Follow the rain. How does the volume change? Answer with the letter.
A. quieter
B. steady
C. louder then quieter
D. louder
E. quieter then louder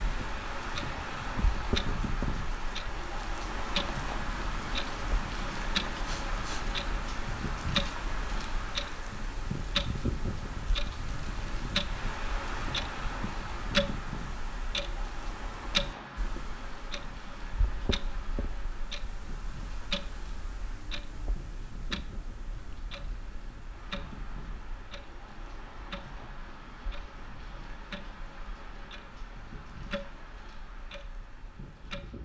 A.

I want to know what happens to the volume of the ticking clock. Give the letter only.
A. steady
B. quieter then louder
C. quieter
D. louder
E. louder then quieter
C.